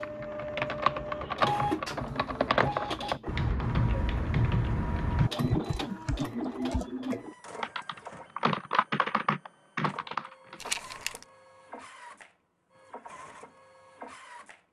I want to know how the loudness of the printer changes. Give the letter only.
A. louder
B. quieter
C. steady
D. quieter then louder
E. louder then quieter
B.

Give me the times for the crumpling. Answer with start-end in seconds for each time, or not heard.
10.6-11.2.